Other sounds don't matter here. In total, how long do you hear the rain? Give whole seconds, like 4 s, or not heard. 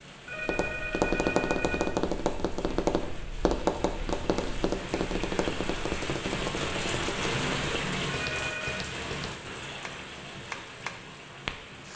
12 s.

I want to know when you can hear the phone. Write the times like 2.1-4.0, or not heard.
0.2-2.0, 8.1-8.9.